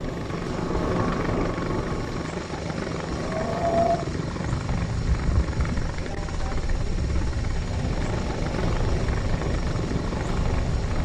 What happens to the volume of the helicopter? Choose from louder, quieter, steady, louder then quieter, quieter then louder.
steady.